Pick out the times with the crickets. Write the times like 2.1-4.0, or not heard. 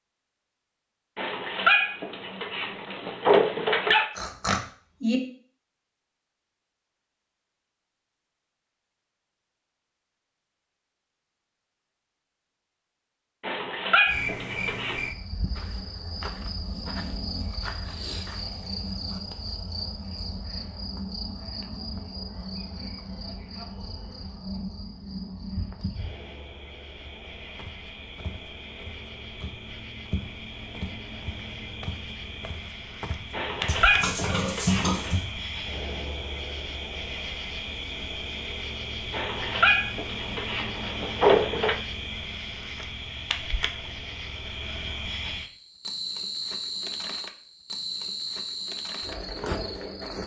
14.1-50.2.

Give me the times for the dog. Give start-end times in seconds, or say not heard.
1.1-4.1, 13.4-15.0, 33.3-35.1, 39.1-41.8.